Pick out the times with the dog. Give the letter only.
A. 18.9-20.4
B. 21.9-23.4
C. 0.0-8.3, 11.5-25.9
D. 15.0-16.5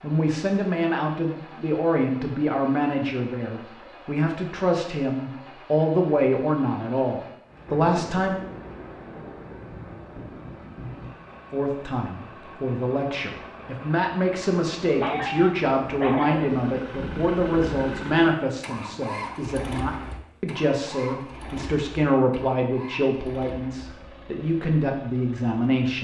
D.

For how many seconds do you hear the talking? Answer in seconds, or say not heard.
23 s.